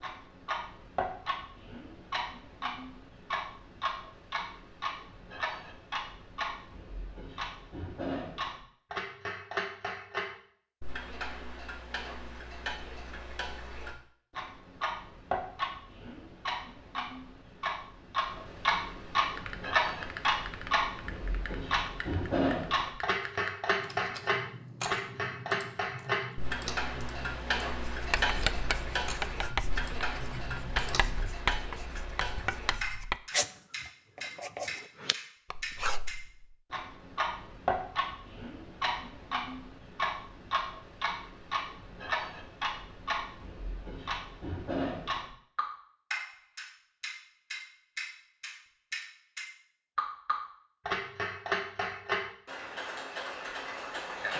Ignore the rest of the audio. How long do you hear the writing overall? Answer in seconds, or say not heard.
9 s.